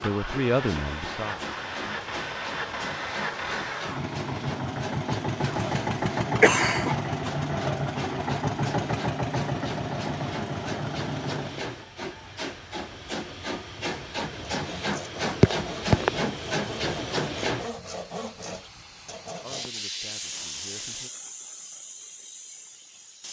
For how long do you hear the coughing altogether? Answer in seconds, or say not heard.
2 s.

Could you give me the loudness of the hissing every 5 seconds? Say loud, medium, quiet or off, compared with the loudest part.
medium, medium, loud, loud, medium.